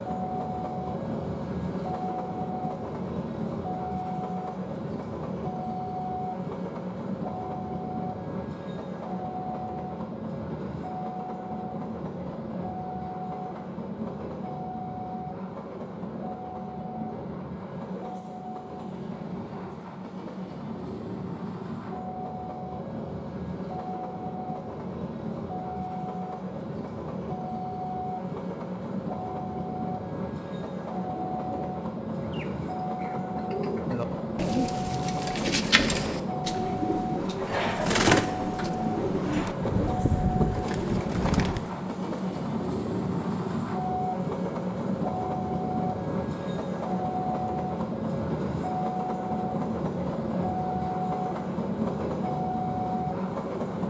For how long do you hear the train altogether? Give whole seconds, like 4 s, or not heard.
54 s.